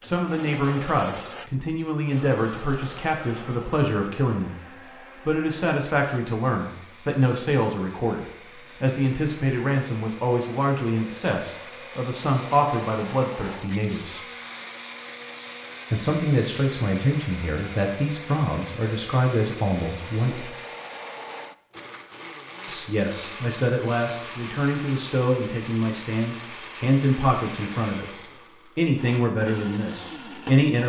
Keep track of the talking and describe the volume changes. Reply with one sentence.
The volume of the talking stays about the same.